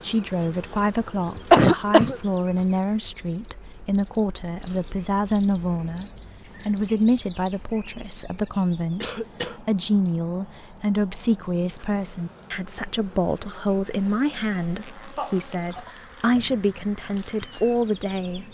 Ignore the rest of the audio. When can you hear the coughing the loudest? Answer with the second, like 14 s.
2 s.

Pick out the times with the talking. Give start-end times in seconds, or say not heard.
0.0-18.4.